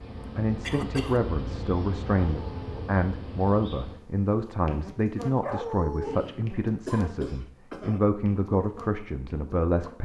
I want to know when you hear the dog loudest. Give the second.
6 s.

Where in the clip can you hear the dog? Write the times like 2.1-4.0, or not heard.
2.1-2.9, 5.4-6.2.